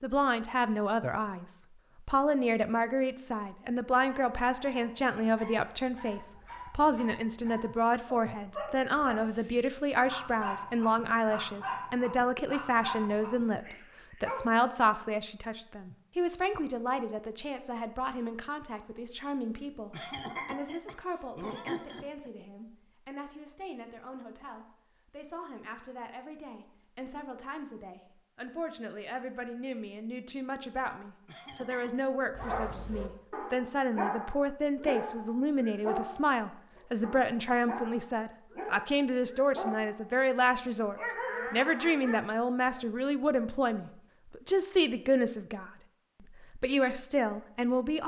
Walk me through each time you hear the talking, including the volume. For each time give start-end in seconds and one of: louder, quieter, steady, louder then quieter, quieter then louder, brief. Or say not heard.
0.0-48.0 quieter then louder.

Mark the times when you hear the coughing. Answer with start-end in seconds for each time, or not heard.
19.9-22.3, 31.2-32.1.